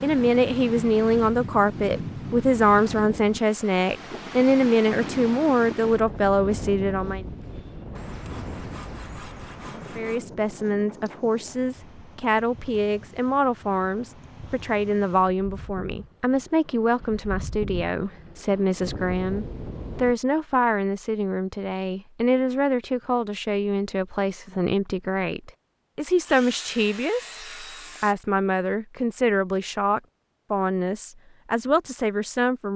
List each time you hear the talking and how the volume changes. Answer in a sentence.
The talking can be heard from 0.0 to 7.2 s, at a steady volume; and from 9.9 to 32.7 s, at a steady volume.